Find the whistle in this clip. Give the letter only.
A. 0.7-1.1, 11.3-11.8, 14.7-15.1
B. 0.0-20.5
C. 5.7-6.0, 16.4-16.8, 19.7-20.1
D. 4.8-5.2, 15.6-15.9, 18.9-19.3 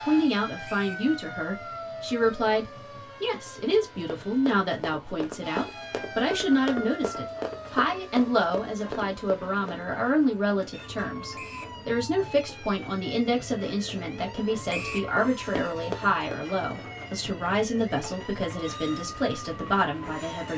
A.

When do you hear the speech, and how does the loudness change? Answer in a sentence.
The speech can be heard from 0.0 to 20.5 s, at a steady volume.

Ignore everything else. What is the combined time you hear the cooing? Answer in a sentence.
You can't hear the cooing here.